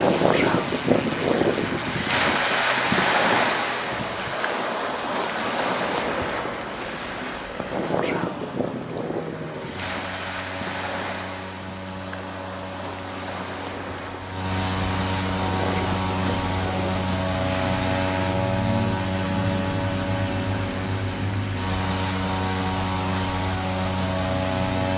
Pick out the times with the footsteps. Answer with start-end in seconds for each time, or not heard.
not heard.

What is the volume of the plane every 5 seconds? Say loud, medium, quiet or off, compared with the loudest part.
medium, medium, medium, loud, loud.